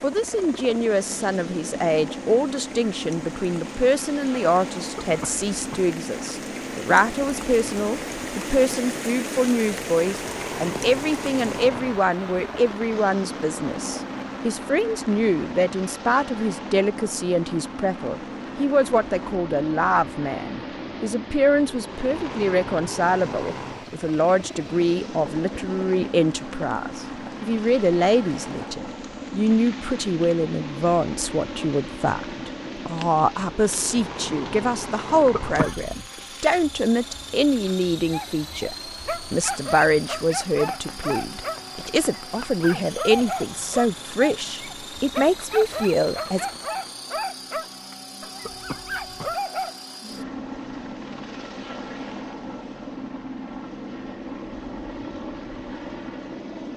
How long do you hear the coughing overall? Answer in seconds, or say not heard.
3 s.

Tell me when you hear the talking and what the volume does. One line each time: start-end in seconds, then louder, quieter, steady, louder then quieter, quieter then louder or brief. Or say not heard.
0.0-46.5 steady.